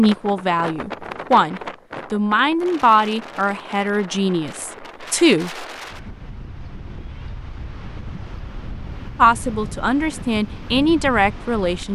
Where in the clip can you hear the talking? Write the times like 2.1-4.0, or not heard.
0.0-5.7, 9.2-11.9.